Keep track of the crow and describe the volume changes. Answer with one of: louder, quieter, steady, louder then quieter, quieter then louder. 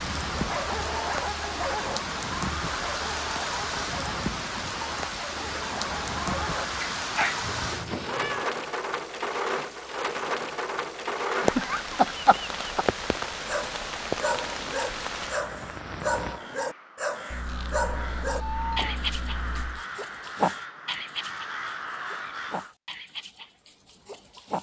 louder.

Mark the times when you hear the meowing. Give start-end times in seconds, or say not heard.
7.4-8.6, 17.3-19.9.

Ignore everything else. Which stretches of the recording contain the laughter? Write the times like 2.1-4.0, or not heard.
11.3-12.8.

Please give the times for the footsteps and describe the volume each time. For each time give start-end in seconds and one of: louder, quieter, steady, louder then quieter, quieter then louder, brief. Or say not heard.
not heard.